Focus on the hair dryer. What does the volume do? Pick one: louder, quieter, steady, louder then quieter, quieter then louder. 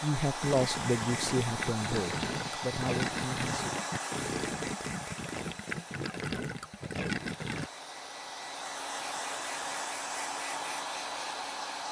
quieter then louder.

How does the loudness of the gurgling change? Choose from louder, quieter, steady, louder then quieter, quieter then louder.
steady.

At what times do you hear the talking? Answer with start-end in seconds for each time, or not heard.
0.0-3.5.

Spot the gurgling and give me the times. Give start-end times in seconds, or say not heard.
0.4-7.7.